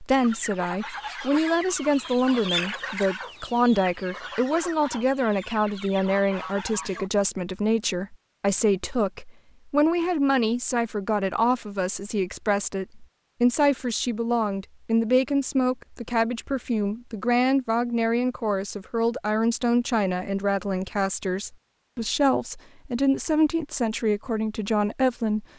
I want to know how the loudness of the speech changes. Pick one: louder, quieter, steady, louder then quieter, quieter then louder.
steady.